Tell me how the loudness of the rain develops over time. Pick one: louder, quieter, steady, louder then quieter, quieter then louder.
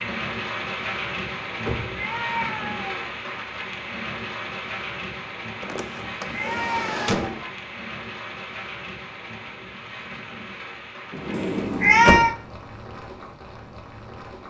quieter.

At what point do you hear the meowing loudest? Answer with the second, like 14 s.
12 s.